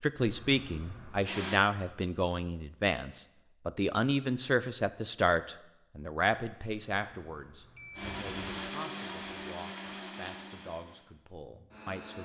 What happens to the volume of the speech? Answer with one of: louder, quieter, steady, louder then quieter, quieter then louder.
quieter.